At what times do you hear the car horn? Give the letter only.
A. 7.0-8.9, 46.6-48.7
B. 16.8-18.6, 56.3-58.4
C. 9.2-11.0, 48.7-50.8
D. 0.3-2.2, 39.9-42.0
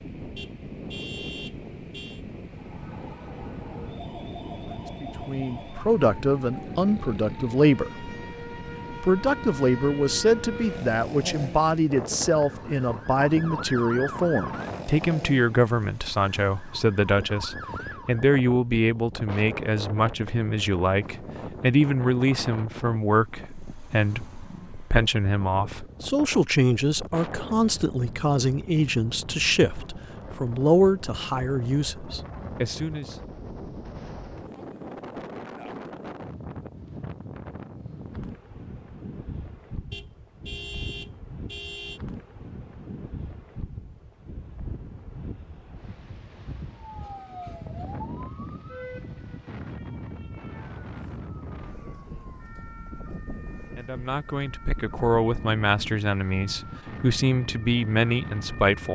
D.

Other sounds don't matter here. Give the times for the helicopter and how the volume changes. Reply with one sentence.
You can't hear the helicopter here.